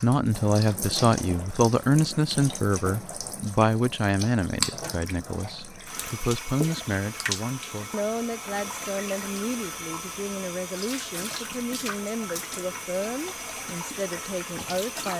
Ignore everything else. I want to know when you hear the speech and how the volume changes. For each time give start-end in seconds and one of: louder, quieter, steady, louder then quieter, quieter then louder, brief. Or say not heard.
0.0-15.1 quieter.